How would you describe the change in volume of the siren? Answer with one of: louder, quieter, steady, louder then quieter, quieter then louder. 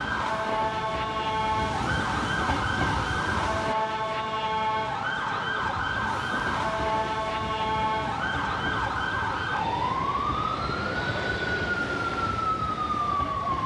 steady.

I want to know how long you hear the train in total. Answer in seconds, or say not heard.
12 s.